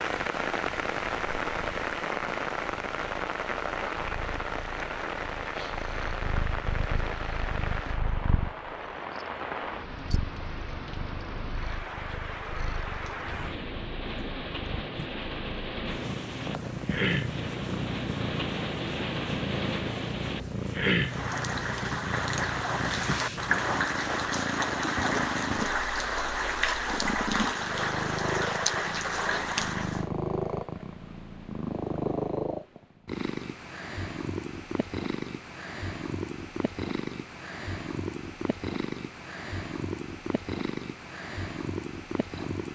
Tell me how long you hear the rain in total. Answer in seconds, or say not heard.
30 s.